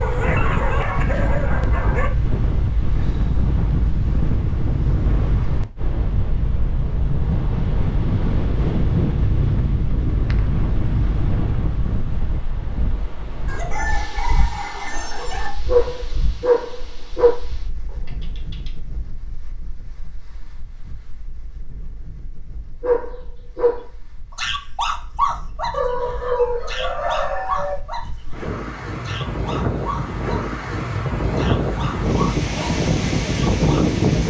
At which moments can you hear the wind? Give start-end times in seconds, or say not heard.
0.0-34.2.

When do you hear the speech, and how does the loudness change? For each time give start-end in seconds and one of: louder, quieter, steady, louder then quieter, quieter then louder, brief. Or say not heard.
not heard.